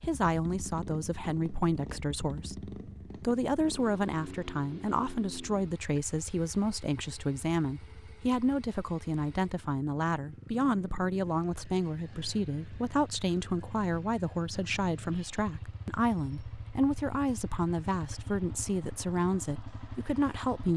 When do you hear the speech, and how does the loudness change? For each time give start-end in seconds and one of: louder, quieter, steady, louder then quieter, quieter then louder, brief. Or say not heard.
0.0-20.7 steady.